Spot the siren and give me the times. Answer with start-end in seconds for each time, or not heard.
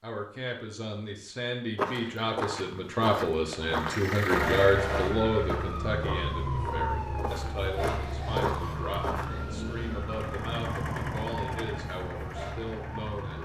4.2-13.4.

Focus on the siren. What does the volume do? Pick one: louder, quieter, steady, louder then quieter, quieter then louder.
quieter.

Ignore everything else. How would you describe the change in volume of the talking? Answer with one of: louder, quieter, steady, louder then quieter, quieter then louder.
louder then quieter.